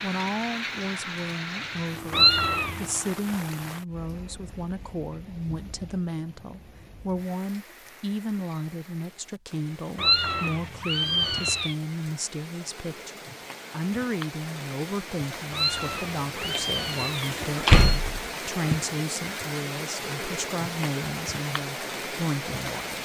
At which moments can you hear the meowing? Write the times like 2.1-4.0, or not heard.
2.1-2.9, 9.9-11.8, 15.5-18.0.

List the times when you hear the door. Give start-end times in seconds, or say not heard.
17.4-18.7.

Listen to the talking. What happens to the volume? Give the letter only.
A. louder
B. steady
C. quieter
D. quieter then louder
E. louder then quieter
B.